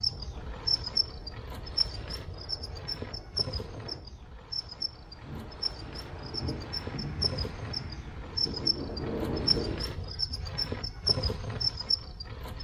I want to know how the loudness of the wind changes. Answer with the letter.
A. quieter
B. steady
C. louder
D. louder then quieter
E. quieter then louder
C.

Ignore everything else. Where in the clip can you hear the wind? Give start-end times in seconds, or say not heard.
0.0-10.0.